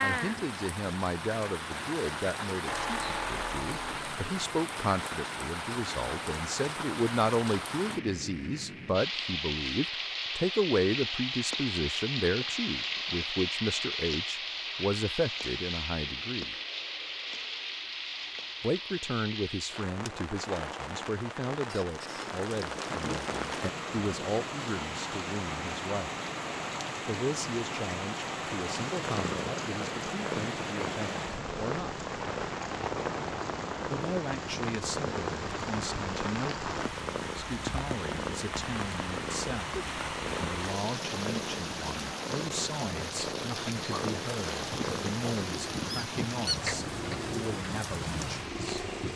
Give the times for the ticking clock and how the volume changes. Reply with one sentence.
The ticking clock can't be heard in this clip.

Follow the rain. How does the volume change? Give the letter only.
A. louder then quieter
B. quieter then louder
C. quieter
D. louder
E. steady
E.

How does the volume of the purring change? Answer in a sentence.
The volume of the purring stays about the same.